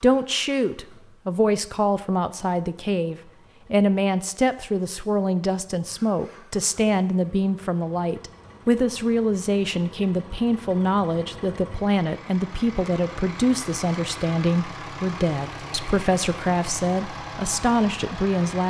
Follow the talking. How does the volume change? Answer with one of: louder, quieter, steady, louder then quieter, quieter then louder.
steady.